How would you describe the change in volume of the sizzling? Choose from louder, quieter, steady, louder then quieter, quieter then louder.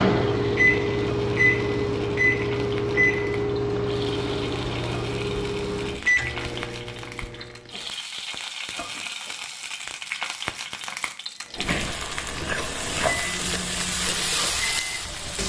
louder.